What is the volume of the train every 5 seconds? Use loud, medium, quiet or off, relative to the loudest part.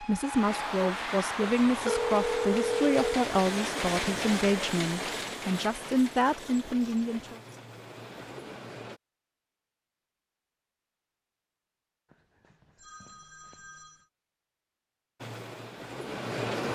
loud, medium, off, loud.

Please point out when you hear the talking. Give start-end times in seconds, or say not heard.
0.0-7.4.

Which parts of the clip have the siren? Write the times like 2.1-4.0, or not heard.
not heard.